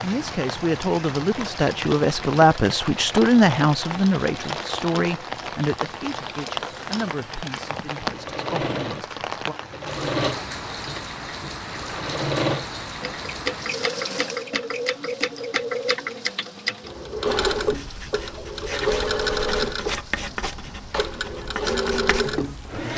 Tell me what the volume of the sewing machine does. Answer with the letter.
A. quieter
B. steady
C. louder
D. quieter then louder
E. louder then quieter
C.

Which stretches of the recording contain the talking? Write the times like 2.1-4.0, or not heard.
0.0-9.6.